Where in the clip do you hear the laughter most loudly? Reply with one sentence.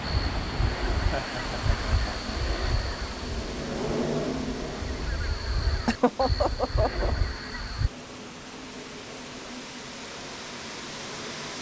The volume of the laughter peaks at 6 seconds.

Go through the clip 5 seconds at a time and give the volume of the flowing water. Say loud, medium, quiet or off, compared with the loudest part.
loud, medium, loud.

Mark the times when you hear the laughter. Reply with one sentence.
The laughter can be heard from 1.1 to 2.4 s and from 5.8 to 7.2 s.